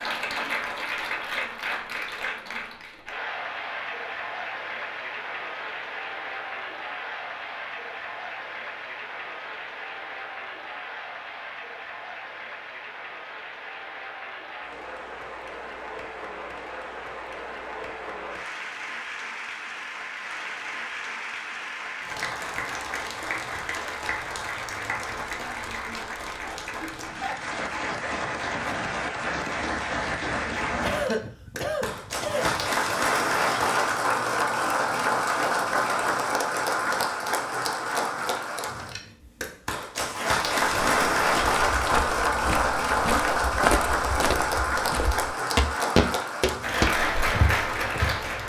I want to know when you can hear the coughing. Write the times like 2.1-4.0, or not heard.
30.7-32.7.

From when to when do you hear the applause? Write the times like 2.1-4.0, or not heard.
0.0-48.4.